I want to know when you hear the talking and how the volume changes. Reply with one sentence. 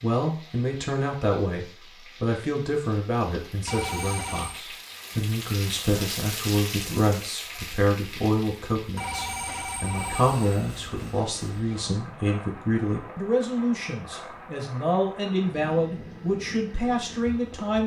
The talking can be heard from 0.0 to 17.8 s, at a steady volume.